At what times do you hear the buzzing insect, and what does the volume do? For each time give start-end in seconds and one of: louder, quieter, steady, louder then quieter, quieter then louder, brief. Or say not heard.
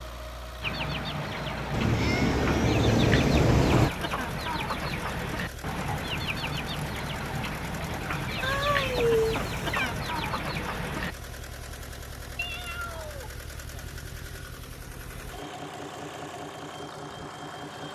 not heard.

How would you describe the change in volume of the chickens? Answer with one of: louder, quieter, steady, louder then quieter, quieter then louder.
steady.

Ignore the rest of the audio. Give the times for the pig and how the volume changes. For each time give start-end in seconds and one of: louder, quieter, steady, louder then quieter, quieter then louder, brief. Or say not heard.
not heard.